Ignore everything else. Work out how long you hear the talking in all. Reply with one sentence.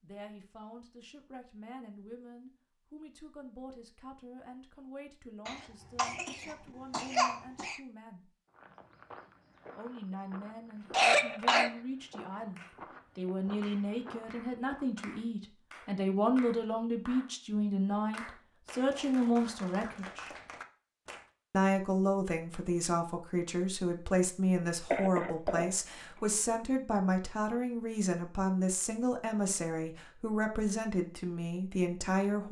You can hear the talking for 30 seconds altogether.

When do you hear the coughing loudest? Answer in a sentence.
The volume of the coughing peaks at 11 seconds.